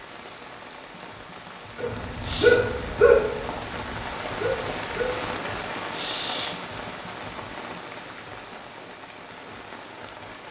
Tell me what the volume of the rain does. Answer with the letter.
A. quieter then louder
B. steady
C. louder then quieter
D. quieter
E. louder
C.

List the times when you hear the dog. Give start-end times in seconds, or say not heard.
1.8-5.3.